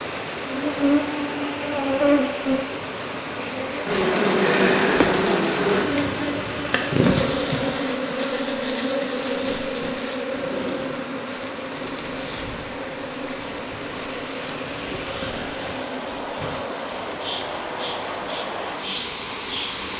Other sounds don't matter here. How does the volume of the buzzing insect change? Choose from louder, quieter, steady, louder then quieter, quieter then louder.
quieter.